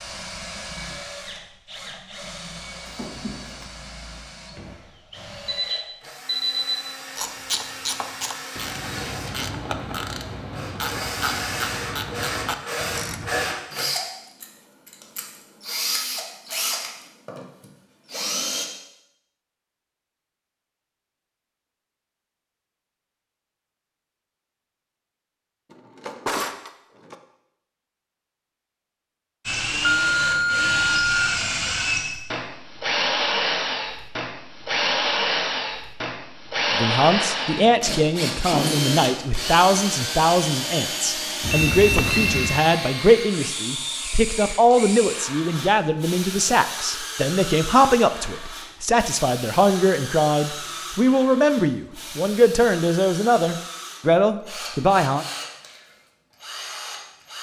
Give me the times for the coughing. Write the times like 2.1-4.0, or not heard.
not heard.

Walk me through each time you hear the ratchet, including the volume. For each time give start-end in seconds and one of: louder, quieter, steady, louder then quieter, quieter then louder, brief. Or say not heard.
7.2-13.5 steady.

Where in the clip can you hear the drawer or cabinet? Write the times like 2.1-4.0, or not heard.
2.9-3.7, 25.7-27.1.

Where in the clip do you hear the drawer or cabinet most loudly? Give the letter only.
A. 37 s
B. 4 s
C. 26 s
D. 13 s
C.